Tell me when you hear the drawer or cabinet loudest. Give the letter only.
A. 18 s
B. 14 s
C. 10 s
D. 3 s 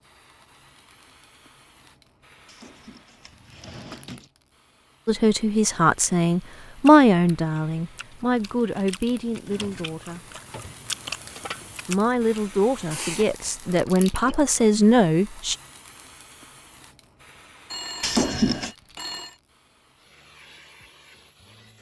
A.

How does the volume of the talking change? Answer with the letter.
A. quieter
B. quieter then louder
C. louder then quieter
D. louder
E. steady
B.